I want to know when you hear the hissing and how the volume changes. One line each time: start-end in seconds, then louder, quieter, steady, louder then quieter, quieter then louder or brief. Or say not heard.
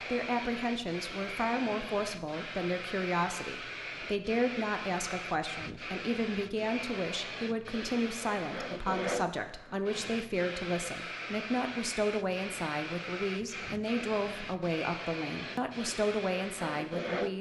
0.0-17.3 steady.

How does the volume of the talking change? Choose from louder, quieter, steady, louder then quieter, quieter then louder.
steady.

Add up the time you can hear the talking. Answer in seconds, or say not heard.
17 s.